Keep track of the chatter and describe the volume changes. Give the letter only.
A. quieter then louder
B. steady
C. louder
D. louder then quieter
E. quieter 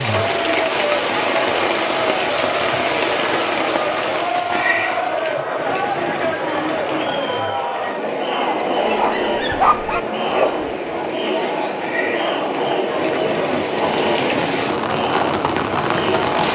B.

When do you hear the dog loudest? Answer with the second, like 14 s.
10 s.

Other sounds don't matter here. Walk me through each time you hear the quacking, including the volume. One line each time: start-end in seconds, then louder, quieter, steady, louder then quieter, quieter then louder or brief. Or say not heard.
not heard.